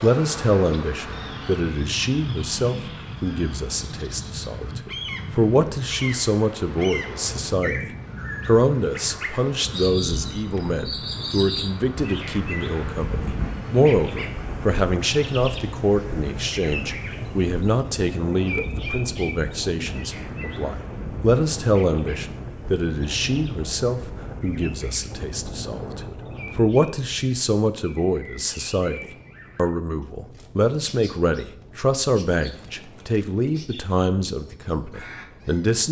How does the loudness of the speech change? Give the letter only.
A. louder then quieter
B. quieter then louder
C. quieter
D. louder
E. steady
E.